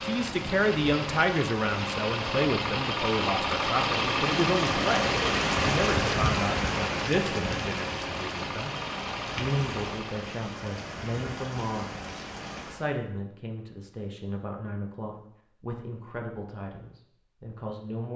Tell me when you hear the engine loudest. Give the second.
4 s.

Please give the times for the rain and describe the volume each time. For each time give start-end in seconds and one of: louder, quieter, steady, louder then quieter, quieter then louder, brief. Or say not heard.
0.0-12.8 louder then quieter.